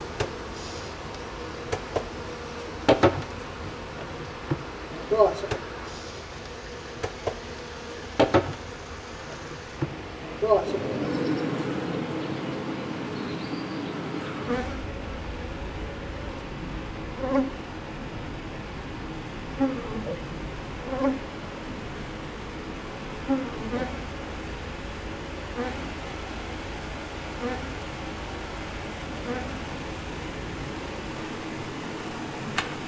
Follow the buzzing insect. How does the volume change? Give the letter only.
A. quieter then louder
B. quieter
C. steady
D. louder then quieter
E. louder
B.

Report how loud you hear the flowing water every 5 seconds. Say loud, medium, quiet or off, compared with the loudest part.
medium, medium, medium, loud, loud, loud, loud.